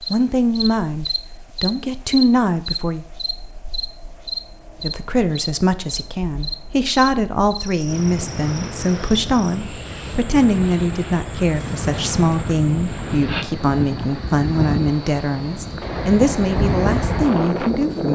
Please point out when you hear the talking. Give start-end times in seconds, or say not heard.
0.1-3.0, 4.8-18.1.